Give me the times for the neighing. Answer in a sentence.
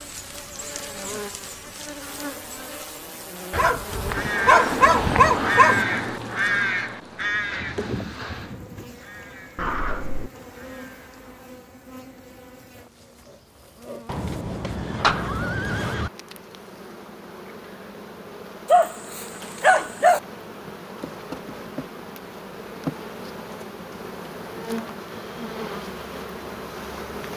The neighing can be heard from 14.1 to 16.1 s.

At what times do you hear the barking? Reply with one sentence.
The barking can be heard from 3.5 to 5.8 s and from 18.6 to 20.2 s.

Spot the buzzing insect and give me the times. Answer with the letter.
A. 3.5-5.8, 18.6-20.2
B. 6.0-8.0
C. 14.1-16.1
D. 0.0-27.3
D.